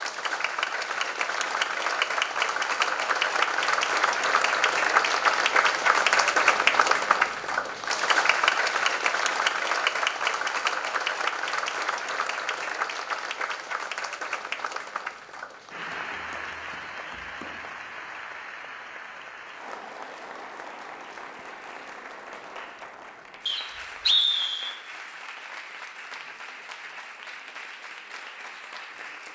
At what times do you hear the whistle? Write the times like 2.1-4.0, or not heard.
23.4-24.8.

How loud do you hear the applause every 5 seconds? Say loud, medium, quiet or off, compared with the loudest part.
loud, loud, medium, quiet, quiet, quiet.